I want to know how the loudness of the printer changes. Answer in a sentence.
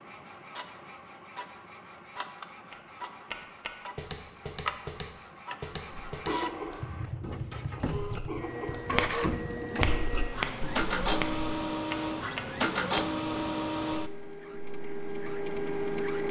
The volume of the printer goes up.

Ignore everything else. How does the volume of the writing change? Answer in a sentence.
The volume of the writing goes down, then up.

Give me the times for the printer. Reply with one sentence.
The printer can be heard from 0.0 to 16.2 s.